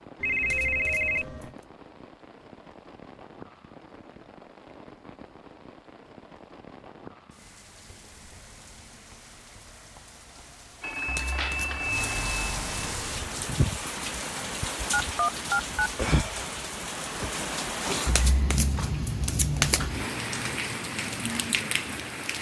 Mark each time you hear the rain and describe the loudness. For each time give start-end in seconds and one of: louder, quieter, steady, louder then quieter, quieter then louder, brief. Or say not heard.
0.0-22.3 louder.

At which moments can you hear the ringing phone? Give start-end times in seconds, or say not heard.
0.2-1.6, 10.8-13.1, 14.9-15.9.